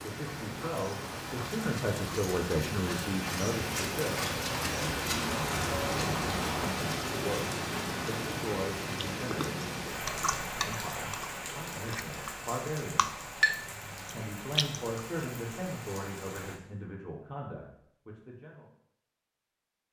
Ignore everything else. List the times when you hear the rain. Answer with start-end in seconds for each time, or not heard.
0.0-16.6.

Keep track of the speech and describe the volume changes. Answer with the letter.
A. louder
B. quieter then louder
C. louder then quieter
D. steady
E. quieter
E.